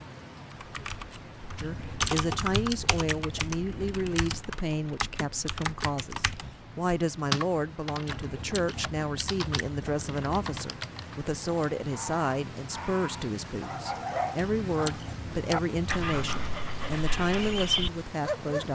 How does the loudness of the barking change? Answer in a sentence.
The volume of the barking goes up.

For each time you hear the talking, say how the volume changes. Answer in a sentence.
You can hear the talking from 1.6 to 18.7 s, at a steady volume.